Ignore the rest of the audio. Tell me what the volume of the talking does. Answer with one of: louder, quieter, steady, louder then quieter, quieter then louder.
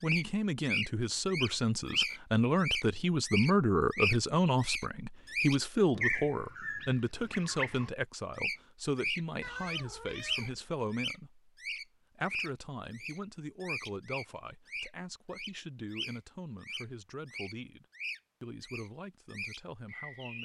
quieter.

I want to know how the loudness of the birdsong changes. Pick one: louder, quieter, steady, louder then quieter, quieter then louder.
quieter.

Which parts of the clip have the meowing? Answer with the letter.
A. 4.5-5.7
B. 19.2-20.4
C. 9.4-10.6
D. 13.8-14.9
C.